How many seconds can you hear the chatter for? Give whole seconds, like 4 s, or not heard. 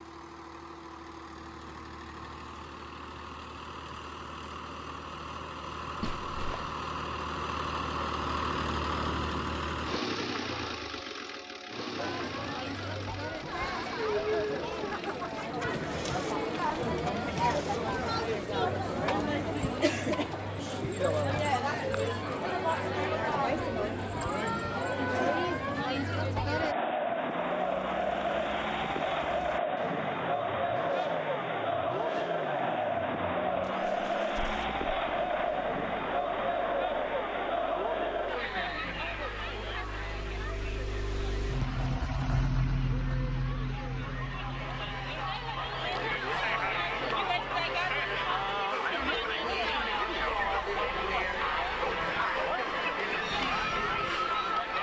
43 s.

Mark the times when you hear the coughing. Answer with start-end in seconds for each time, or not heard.
6.0-6.8.